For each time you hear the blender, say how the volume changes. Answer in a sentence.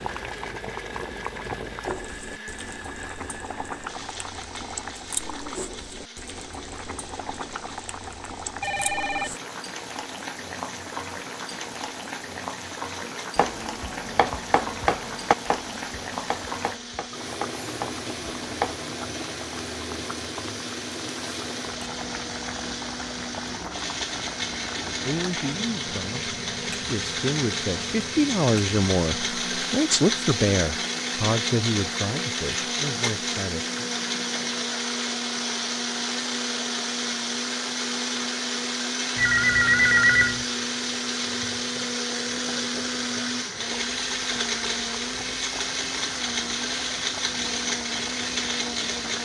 The blender can be heard from 0.0 to 49.2 s, getting louder.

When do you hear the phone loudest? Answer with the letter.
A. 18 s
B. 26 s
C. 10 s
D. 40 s
D.